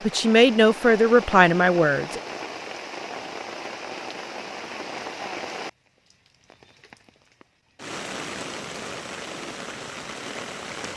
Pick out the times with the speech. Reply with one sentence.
The speech can be heard from 0.1 to 2.2 s.